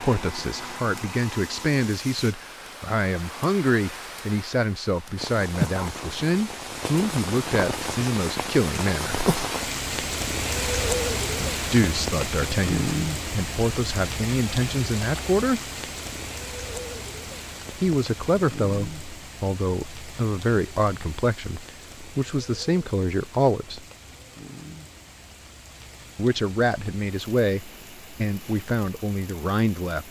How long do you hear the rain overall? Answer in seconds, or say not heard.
30 s.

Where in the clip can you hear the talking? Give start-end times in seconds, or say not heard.
0.0-9.2, 11.3-15.6, 17.8-23.9, 26.1-30.0.